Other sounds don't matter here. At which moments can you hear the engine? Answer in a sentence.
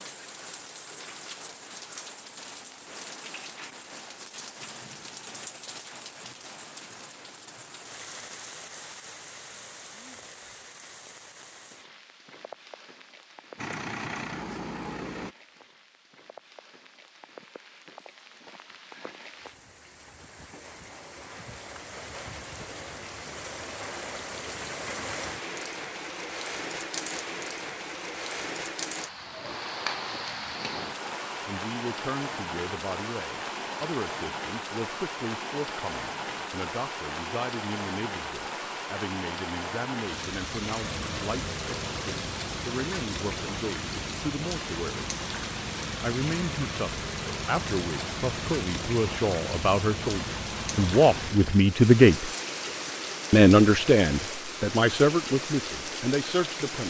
The engine can be heard from 13.6 to 15.3 s and from 40.8 to 51.6 s.